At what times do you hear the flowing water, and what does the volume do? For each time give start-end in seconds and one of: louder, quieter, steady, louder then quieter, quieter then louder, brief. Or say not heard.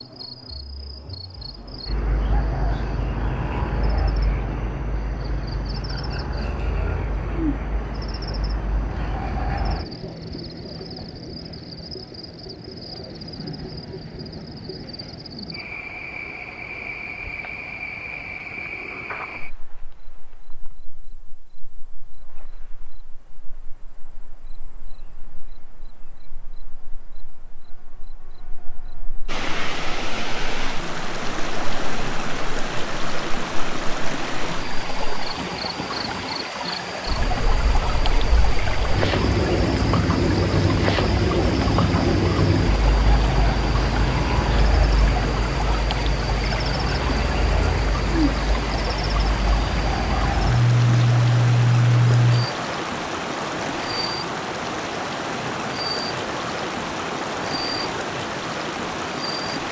29.2-59.6 steady.